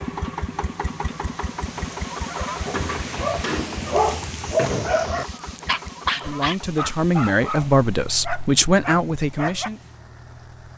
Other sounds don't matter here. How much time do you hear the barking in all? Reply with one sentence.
The barking can be heard for 7 seconds in total.